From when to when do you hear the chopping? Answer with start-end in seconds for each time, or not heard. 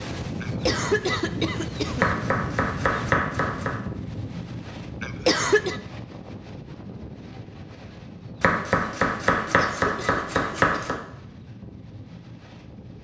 1.9-3.8, 8.4-11.0.